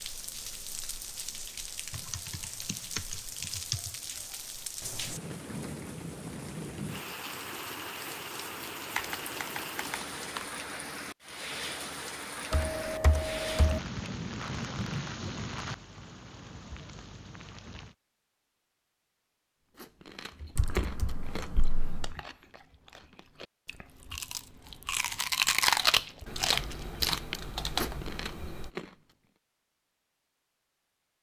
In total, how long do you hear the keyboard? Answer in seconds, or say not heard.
9 s.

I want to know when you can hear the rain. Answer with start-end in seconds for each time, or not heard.
0.0-17.9.